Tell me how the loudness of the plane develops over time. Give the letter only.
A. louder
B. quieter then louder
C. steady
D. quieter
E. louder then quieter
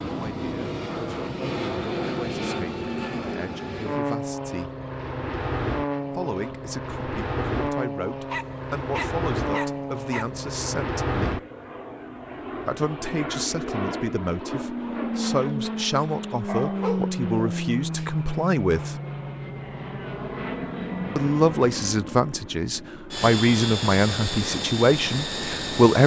C.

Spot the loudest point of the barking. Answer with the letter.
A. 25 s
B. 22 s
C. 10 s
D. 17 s
D.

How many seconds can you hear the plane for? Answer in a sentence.
You can hear the plane for 26 seconds altogether.